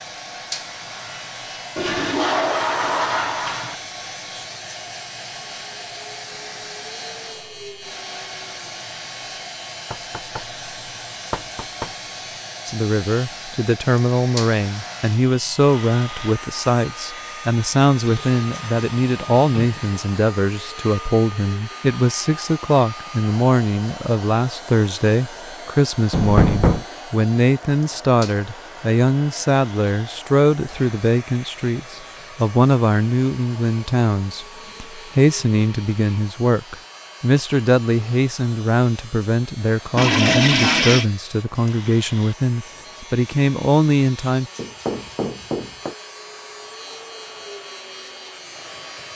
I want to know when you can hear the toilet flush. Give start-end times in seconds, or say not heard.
1.8-3.8, 18.1-19.8, 40.0-41.0.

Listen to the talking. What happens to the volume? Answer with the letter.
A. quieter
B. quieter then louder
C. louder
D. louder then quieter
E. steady
E.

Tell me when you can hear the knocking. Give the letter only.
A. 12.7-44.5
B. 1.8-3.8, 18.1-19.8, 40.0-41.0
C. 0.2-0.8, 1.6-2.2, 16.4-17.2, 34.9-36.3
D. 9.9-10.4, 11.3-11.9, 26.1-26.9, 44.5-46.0
D.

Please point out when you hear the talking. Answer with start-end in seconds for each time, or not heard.
12.7-44.5.